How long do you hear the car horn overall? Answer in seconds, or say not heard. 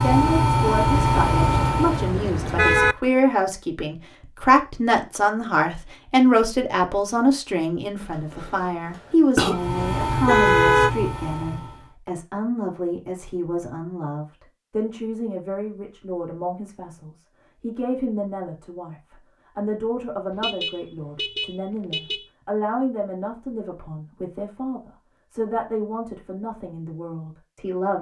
5 s.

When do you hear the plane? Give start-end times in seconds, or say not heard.
0.0-2.1, 9.4-11.9.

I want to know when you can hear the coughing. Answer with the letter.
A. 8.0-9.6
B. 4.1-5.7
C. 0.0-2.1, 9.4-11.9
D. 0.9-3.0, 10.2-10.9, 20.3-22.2
A.